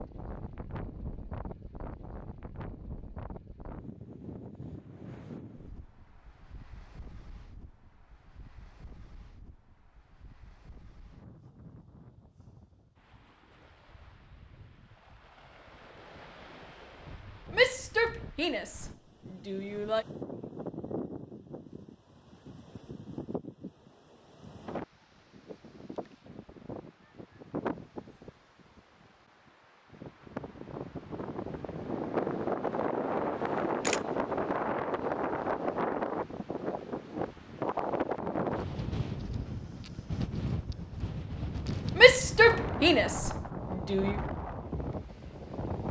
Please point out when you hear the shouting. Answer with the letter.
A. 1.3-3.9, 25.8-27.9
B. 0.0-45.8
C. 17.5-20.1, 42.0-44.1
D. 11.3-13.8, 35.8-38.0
C.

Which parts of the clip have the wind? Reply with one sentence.
The wind can be heard from 0.0 to 45.8 s.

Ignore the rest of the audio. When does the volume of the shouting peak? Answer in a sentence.
The volume of the shouting peaks at 42 seconds.